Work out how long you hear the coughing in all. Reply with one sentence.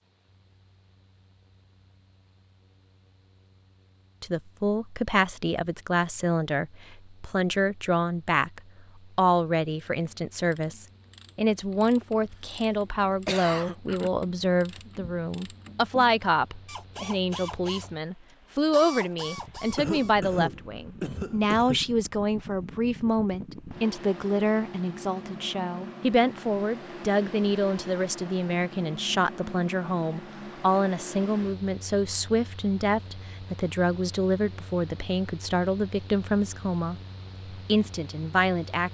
You can hear the coughing for 4 seconds altogether.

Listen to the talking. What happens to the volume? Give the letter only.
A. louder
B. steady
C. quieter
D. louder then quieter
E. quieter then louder
B.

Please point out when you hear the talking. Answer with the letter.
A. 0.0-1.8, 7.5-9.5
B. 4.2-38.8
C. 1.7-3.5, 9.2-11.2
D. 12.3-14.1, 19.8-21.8
B.